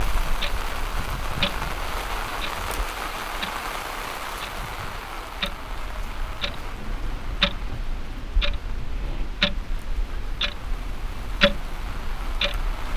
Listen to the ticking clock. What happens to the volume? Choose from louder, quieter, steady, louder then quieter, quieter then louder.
quieter then louder.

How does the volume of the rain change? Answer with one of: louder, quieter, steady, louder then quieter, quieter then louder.
quieter then louder.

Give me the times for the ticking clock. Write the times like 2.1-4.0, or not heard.
0.0-12.9.